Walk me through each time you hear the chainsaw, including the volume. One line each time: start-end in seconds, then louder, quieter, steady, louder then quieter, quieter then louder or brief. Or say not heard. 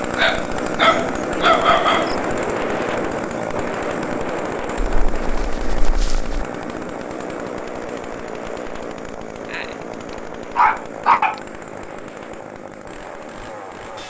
0.0-14.0 quieter.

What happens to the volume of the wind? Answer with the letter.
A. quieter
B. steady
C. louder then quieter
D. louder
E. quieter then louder
A.